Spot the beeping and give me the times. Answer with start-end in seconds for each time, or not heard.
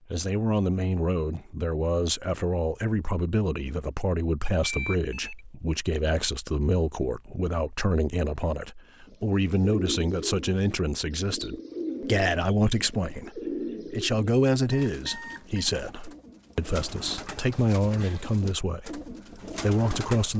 4.6-5.4, 14.7-15.7.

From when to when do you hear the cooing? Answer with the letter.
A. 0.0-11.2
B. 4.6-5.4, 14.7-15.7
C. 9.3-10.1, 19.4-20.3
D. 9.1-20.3
D.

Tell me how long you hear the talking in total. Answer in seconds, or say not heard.
20 s.